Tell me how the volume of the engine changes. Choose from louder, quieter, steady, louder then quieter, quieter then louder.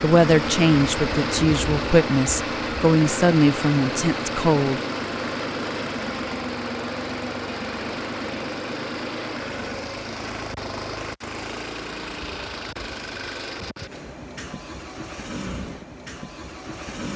quieter.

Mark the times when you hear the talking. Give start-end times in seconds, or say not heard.
0.0-4.8.